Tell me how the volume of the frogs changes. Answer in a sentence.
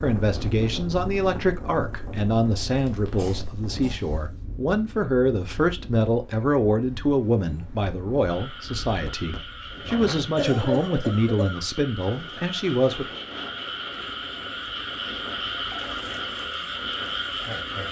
The loudness of the frogs goes up.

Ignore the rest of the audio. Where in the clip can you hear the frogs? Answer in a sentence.
You can hear the frogs from 8.2 to 17.8 s.